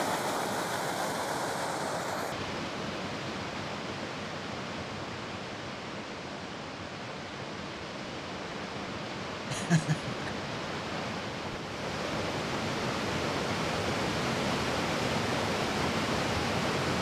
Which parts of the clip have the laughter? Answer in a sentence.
You can hear the laughter from 9.5 to 10.3 s.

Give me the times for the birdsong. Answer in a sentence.
The birdsong can't be heard in this clip.